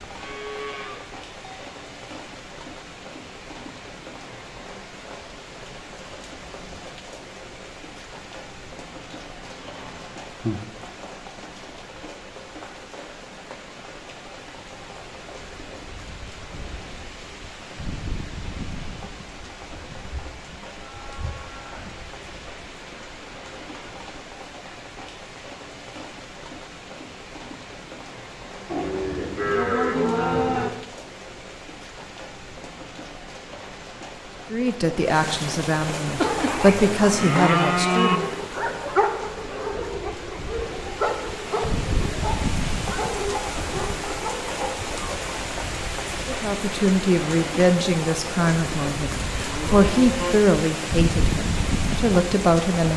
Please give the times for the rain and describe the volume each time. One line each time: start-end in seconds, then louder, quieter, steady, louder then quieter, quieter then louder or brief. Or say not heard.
0.0-52.9 louder.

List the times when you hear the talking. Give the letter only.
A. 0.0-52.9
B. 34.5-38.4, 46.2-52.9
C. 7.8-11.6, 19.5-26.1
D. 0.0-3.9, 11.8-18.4
B.